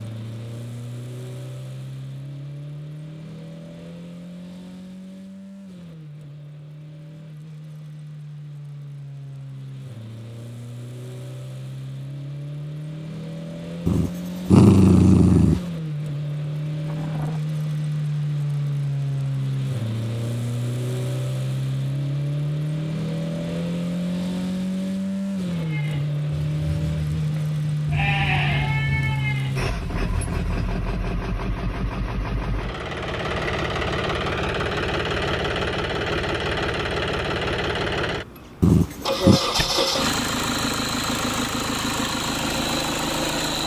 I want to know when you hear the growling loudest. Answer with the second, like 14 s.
15 s.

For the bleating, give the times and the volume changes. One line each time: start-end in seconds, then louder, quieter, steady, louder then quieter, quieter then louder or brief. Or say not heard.
25.6-30.6 louder then quieter.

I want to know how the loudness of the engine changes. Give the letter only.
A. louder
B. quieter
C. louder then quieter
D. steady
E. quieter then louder
A.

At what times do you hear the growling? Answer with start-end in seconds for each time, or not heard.
13.8-15.6, 38.6-39.4.